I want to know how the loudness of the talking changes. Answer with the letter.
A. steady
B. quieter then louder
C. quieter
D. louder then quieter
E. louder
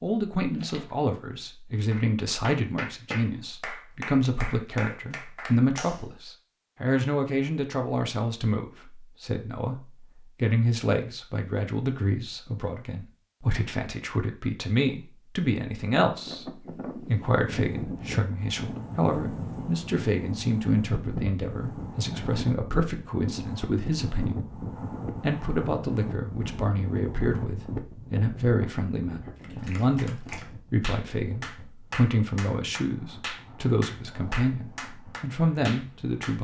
A.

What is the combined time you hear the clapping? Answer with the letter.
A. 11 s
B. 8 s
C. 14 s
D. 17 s
A.